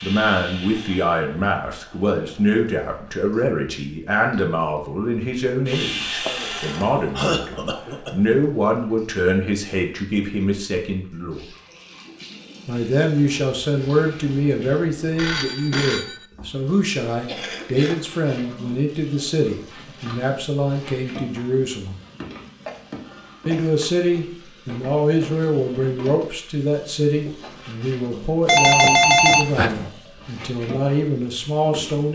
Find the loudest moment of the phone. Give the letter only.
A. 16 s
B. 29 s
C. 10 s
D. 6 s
B.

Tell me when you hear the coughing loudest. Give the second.
7 s.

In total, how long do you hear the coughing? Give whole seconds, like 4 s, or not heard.
4 s.